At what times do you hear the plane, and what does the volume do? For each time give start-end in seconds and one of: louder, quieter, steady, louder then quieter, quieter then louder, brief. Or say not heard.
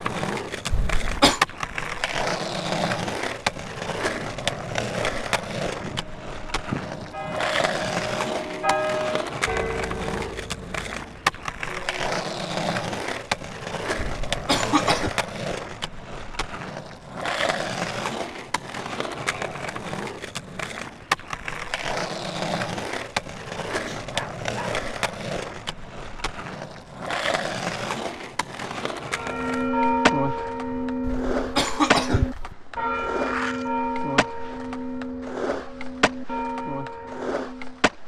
not heard.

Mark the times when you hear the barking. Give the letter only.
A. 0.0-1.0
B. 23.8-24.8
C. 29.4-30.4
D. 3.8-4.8
B.